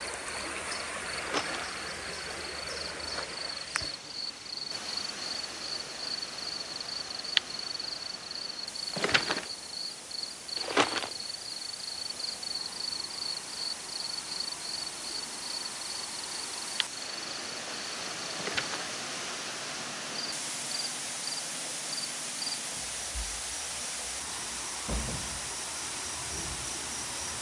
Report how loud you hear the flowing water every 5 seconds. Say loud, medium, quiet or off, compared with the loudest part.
loud, medium, medium, loud, loud, loud.